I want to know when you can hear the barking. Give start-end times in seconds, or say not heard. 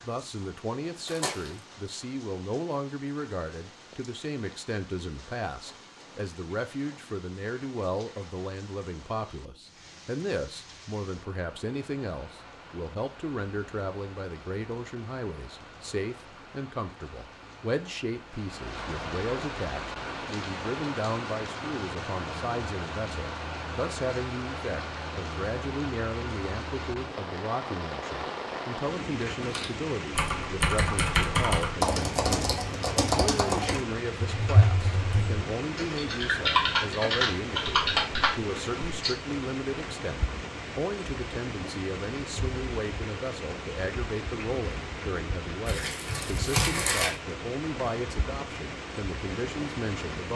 not heard.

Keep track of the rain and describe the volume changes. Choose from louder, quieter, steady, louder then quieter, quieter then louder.
louder.